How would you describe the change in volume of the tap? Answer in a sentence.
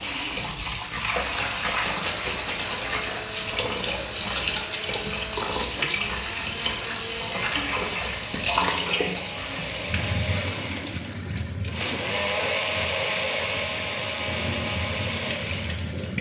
The volume of the tap goes down.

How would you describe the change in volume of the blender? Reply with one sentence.
The volume of the blender goes up.